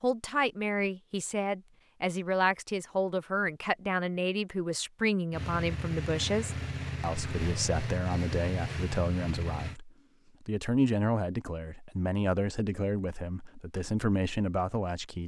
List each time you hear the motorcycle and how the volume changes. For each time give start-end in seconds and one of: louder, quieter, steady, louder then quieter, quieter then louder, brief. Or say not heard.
5.3-9.8 steady.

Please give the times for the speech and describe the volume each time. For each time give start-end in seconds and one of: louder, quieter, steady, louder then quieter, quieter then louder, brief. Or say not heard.
0.0-15.2 steady.